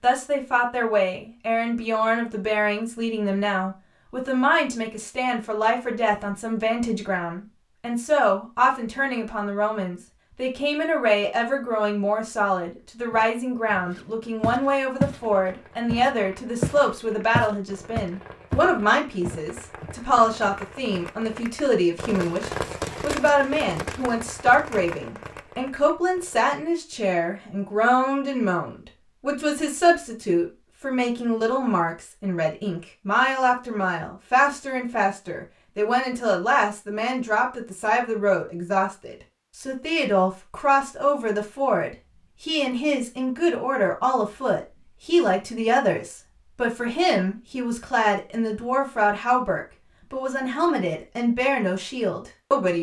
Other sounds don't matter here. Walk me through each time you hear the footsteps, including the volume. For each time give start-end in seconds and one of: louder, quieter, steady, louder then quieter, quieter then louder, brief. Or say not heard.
13.1-15.2 brief
15.9-20.1 quieter.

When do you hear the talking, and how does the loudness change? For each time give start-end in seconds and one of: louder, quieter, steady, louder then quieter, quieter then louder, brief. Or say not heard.
0.0-52.7 steady.